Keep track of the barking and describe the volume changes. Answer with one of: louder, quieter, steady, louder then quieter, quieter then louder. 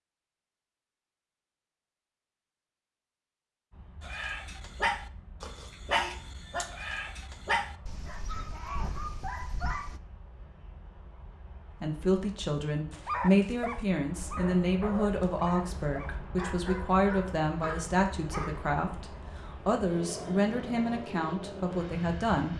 quieter.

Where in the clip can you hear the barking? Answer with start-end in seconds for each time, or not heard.
4.0-10.0, 12.9-18.7.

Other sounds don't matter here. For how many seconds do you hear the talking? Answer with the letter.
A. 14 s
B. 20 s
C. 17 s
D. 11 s
D.